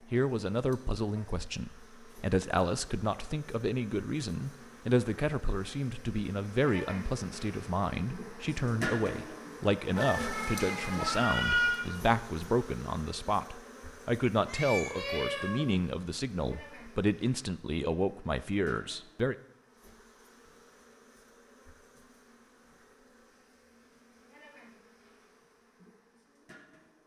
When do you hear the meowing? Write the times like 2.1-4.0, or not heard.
9.9-11.8, 14.4-15.8.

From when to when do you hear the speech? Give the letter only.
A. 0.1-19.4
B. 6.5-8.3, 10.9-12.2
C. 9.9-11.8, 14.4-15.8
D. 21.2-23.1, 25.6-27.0
A.